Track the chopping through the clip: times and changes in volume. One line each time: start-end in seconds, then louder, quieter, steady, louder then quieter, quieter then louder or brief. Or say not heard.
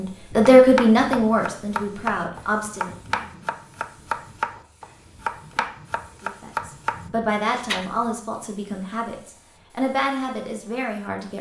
0.6-7.9 steady.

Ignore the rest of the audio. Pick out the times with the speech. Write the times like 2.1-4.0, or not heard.
0.0-3.0, 6.2-11.3.